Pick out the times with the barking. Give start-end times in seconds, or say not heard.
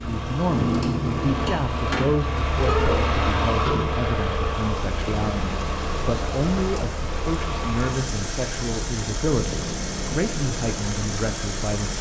not heard.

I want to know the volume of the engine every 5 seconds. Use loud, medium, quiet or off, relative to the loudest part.
loud, medium, medium.